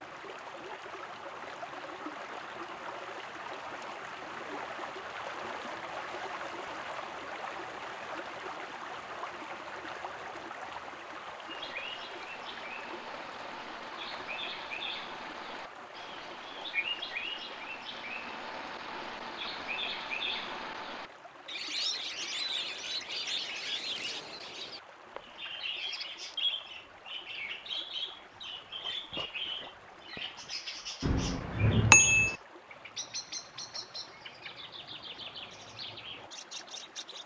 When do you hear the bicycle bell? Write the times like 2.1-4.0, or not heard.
31.0-32.4.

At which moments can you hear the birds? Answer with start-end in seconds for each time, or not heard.
11.4-37.2.